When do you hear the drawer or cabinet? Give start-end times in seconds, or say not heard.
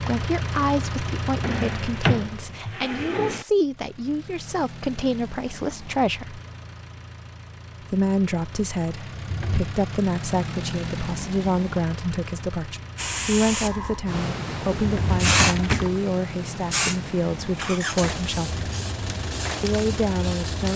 1.4-3.5, 9.1-9.8, 14.8-16.0.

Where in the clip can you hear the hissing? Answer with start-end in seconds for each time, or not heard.
12.9-20.7.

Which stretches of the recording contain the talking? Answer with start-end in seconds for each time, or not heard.
0.1-6.4, 7.9-18.6, 19.6-20.7.